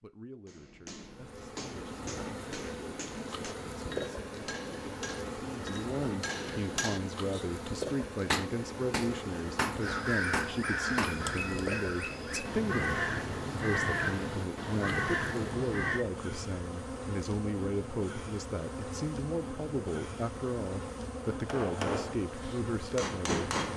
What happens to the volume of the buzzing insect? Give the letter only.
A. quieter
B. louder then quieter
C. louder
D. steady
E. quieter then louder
D.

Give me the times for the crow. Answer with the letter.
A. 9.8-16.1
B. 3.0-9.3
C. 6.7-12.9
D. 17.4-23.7
A.